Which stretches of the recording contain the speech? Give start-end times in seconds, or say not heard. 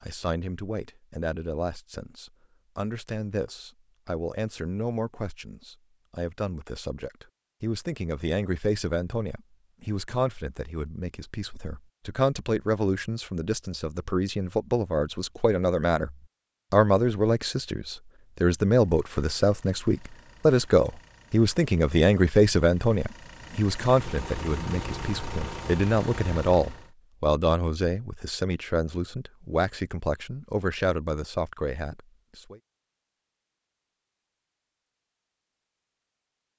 0.0-32.6.